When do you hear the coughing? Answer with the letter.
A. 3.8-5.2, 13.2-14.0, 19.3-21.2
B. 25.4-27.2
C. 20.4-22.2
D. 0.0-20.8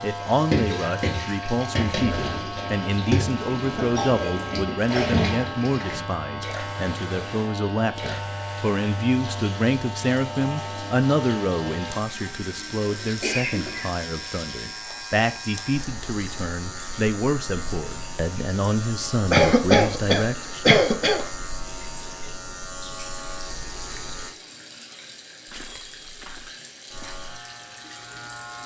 A.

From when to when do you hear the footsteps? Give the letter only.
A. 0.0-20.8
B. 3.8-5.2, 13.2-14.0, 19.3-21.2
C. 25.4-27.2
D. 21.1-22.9
C.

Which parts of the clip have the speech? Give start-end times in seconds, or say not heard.
0.0-20.8.